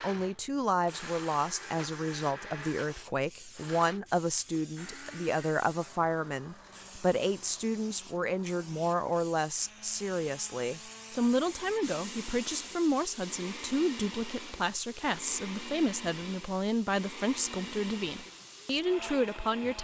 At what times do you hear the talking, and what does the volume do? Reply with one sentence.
You can hear the talking from 0.0 to 19.8 s, at a steady volume.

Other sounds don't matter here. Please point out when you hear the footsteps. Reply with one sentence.
You can't hear the footsteps here.